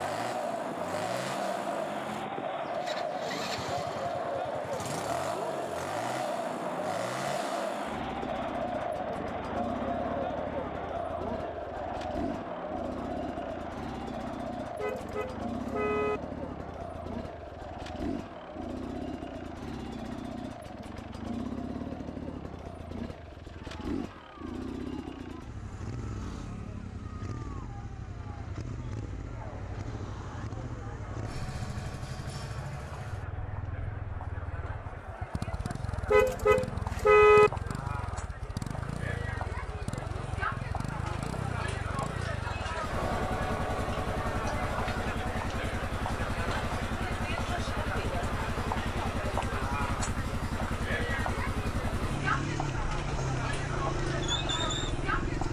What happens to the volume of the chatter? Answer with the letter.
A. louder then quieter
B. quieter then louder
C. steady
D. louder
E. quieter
B.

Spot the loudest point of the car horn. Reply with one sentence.
The volume of the car horn peaks at 37 seconds.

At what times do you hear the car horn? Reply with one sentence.
The car horn can be heard from 14.8 to 16.2 s and from 36.1 to 37.5 s.